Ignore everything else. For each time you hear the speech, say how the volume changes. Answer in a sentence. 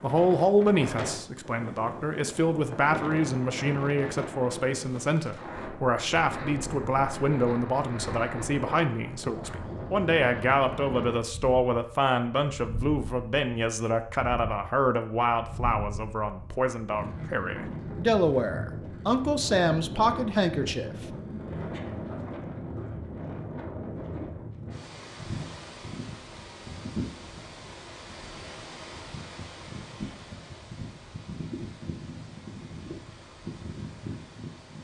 The speech can be heard from 0.0 to 20.9 s, at a steady volume.